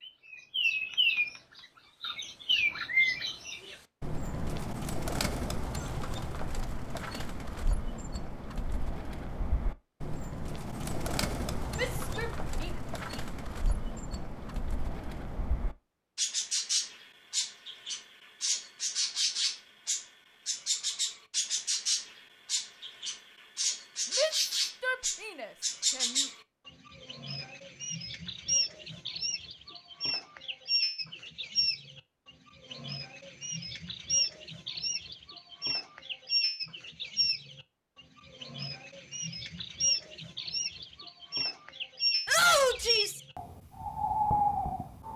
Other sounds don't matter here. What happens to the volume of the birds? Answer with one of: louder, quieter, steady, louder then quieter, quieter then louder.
quieter then louder.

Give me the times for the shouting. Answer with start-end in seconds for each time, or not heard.
11.8-12.8, 24.1-26.2, 42.2-43.2.